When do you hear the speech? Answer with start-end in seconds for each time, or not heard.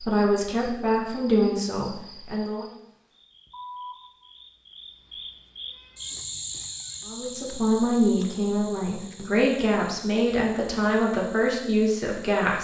0.0-2.6, 7.0-12.5.